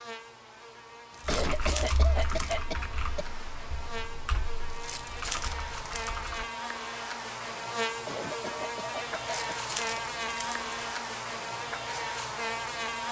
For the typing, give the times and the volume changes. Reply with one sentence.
You can hear the typing from 1.2 to 6.5 s, getting quieter then louder.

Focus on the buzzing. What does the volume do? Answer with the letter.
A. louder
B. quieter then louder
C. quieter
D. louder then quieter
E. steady
A.